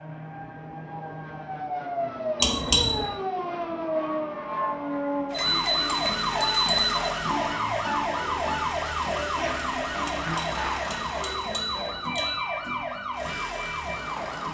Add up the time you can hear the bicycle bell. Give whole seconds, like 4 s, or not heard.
5 s.